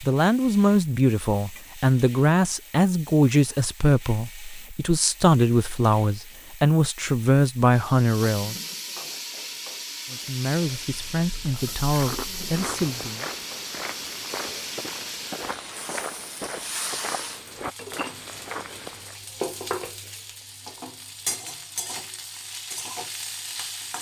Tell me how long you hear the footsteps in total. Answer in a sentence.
The footsteps can be heard for 7 seconds in total.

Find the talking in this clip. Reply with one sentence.
You can hear the talking from 0.0 to 8.6 s and from 10.1 to 13.2 s.